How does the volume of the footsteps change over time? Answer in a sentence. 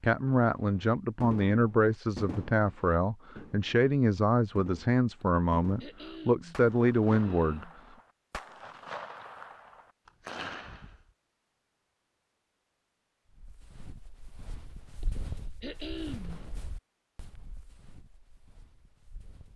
The loudness of the footsteps goes up, then down.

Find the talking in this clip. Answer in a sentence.
The talking can be heard from 0.0 to 7.7 s.